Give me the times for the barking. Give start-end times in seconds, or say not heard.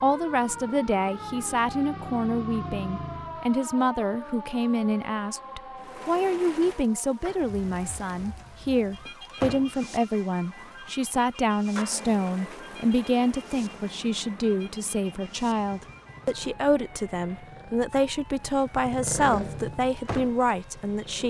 not heard.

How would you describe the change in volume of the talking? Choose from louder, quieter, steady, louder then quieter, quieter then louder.
steady.